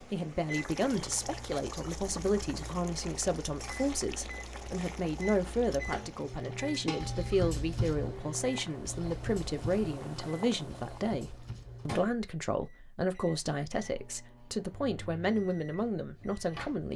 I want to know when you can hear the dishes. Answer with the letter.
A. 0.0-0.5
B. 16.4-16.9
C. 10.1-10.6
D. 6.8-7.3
D.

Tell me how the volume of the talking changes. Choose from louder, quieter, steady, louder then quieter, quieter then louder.
steady.